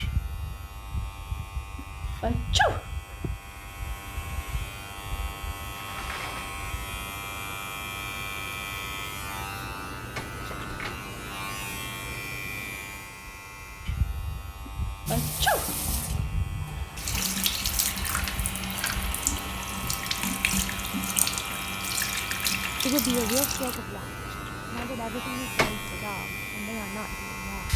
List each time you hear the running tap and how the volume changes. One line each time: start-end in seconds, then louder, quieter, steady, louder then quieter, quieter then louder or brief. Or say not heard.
15.1-23.8 louder.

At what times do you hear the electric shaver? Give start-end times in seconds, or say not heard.
0.0-27.7.